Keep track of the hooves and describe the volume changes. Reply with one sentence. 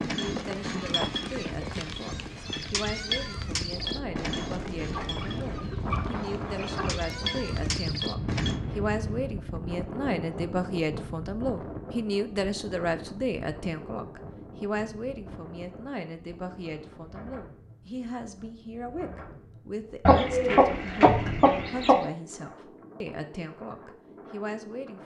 The loudness of the hooves goes down, then up.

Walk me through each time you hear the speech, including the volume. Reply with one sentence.
You can hear the speech from 0.1 to 25.0 s, getting louder then quieter.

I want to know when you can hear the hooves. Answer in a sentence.
The hooves can be heard from 0.0 to 8.6 s.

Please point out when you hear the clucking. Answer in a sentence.
The clucking can be heard from 4.8 to 7.0 s and from 20.1 to 22.1 s.